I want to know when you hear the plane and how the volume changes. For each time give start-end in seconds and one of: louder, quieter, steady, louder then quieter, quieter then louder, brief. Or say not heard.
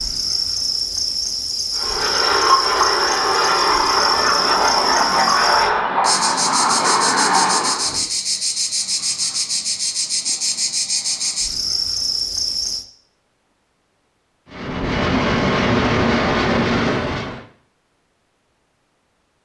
1.8-8.1 steady
14.5-17.4 brief.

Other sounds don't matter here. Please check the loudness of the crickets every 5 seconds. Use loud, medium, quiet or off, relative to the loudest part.
loud, loud, loud, off.